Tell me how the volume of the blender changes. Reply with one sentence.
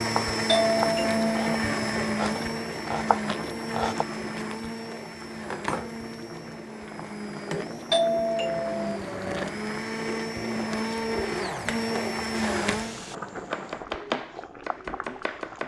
The loudness of the blender goes down, then up.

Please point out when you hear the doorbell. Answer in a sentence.
You can hear the doorbell from 0.5 to 1.6 s and from 7.9 to 9.0 s.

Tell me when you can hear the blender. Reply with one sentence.
The blender can be heard from 0.0 to 13.0 s.